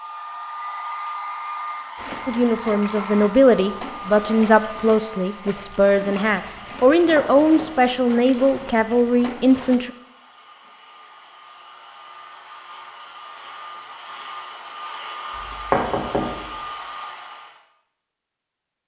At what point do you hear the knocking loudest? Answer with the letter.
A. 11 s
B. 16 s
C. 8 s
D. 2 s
B.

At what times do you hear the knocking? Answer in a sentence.
The knocking can be heard from 7.0 to 7.7 s and from 15.3 to 16.4 s.